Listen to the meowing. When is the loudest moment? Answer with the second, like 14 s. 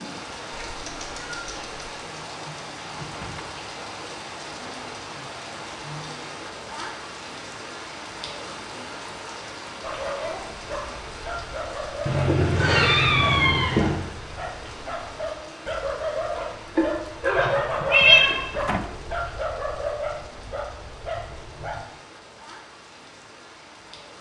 18 s.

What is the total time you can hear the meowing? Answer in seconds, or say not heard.
5 s.